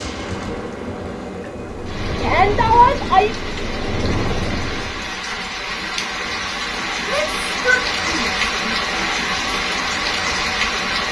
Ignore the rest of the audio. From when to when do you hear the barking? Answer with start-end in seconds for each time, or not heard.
not heard.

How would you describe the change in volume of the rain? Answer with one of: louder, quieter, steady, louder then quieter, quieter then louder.
louder.